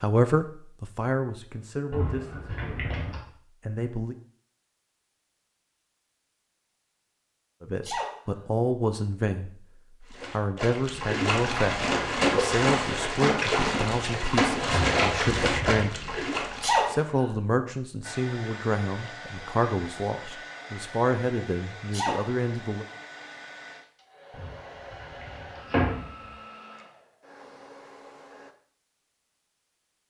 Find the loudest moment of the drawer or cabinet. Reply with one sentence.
The volume of the drawer or cabinet peaks at 26 seconds.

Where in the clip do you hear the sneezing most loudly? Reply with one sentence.
The loudest moment of the sneezing is at 17 seconds.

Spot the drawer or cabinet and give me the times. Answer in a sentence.
You can hear the drawer or cabinet from 1.9 to 3.2 s, from 14.7 to 15.8 s and from 24.3 to 26.3 s.